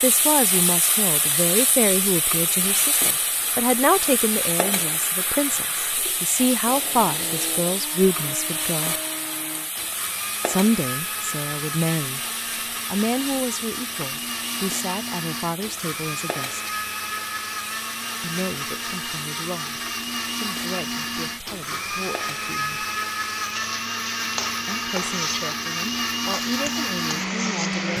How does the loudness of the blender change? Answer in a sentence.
The loudness of the blender goes up.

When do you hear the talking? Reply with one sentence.
The talking can be heard from 0.0 to 8.9 s, from 10.4 to 12.2 s, from 12.9 to 16.7 s, from 18.2 to 22.9 s and from 24.6 to 27.9 s.